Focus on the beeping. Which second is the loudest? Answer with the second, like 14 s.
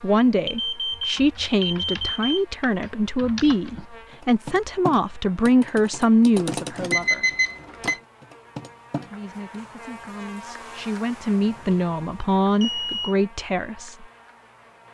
7 s.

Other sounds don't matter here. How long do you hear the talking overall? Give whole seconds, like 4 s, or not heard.
12 s.